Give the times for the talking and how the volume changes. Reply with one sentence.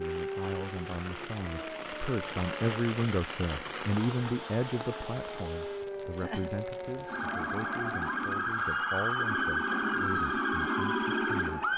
You can hear the talking from 0.0 to 11.7 s, getting louder then quieter.